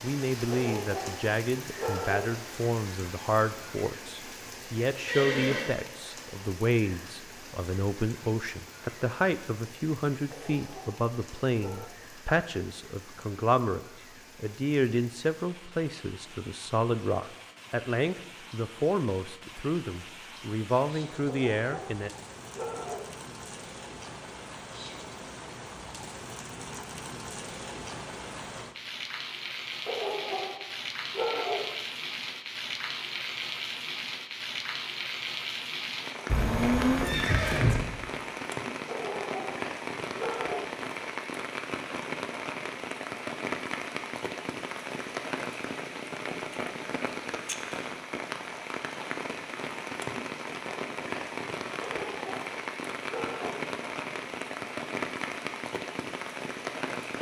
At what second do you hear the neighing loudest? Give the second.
37 s.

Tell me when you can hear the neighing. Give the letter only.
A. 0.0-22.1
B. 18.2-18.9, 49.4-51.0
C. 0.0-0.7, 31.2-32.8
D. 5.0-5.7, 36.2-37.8
D.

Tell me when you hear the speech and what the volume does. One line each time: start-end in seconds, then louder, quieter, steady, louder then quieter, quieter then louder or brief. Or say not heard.
0.0-22.1 steady.